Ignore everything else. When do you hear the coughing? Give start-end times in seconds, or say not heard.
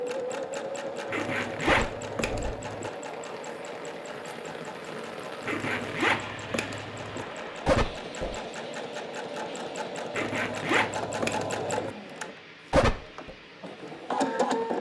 1.6-2.5, 7.7-8.3, 12.7-13.3.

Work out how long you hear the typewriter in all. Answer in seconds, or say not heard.
not heard.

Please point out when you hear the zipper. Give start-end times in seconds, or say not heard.
1.1-2.9, 5.5-7.2, 10.1-11.9.